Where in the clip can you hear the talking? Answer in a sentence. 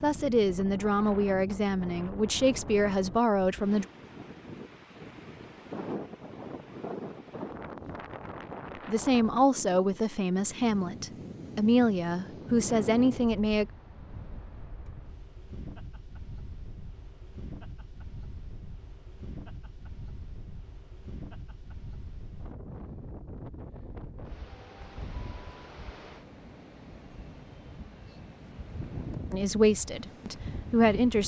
The talking can be heard from 0.0 to 3.9 s, from 8.8 to 13.7 s and from 29.3 to 31.2 s.